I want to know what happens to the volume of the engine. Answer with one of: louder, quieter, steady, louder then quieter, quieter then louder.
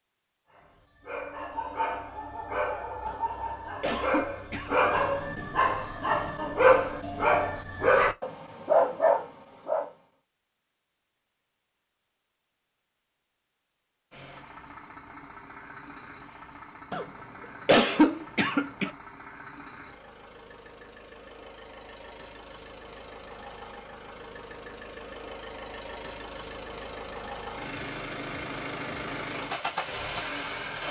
louder.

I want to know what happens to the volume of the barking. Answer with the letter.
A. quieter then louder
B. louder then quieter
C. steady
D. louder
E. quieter
D.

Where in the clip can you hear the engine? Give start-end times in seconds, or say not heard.
14.1-30.8.